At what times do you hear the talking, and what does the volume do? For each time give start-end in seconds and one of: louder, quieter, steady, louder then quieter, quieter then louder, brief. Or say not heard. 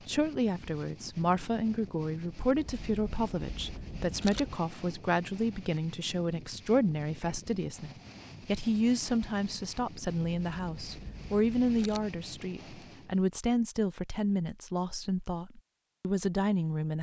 0.1-16.9 steady.